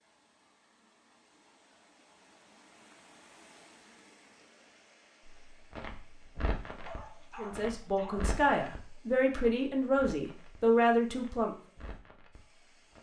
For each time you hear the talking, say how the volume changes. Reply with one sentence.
You can hear the talking from 7.3 to 11.6 s, getting louder.